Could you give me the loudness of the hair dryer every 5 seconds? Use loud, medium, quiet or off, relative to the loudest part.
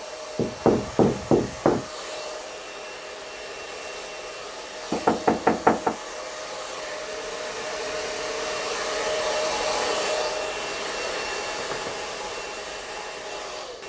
medium, loud, loud.